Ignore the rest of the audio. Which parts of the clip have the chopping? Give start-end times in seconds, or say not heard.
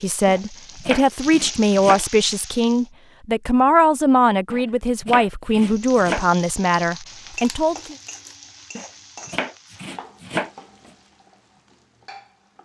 0.2-2.0, 4.5-6.2, 8.8-10.5.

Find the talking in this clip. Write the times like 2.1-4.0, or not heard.
0.0-8.0.